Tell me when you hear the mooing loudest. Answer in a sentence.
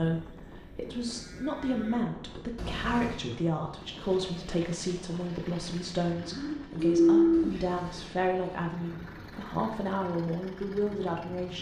The volume of the mooing peaks at 7 seconds.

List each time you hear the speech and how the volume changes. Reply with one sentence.
The speech can be heard from 0.0 to 11.5 s, at a steady volume.